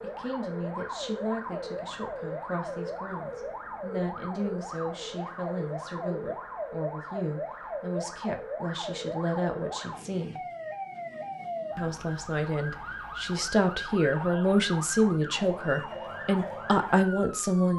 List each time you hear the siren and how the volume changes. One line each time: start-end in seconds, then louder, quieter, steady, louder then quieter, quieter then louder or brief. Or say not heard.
0.0-17.7 steady.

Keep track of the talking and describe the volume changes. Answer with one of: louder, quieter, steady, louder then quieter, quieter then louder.
louder.